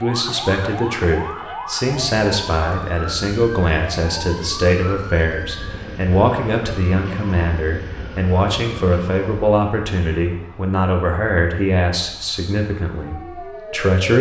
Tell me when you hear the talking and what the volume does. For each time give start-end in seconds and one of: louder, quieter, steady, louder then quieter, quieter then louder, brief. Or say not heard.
0.0-14.1 steady.